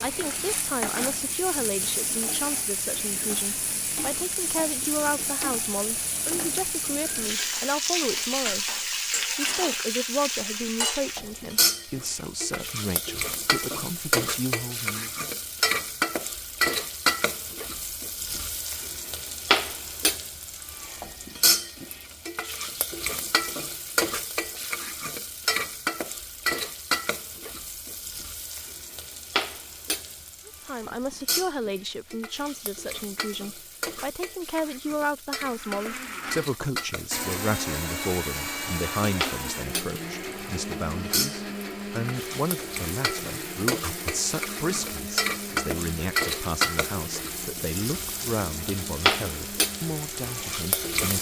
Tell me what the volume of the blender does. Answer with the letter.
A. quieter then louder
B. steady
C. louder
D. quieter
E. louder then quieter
D.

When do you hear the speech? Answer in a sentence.
The speech can be heard from 0.0 to 15.1 s and from 30.4 to 51.1 s.